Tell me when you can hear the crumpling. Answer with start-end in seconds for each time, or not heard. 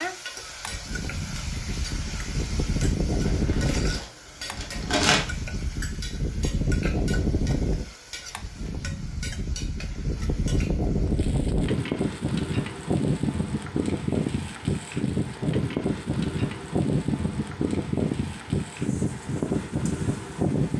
3.2-5.3.